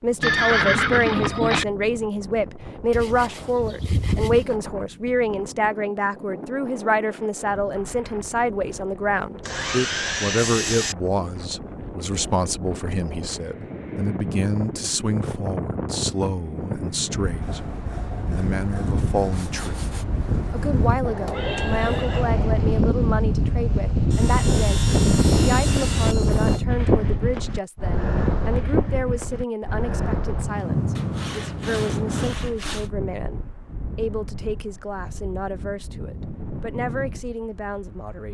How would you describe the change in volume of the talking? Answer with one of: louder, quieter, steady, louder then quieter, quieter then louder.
quieter.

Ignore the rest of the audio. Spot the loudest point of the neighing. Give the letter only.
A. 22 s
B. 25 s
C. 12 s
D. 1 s
D.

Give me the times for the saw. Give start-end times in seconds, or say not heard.
2.9-4.5, 9.4-10.9, 17.4-20.1, 24.1-26.6, 30.9-32.9.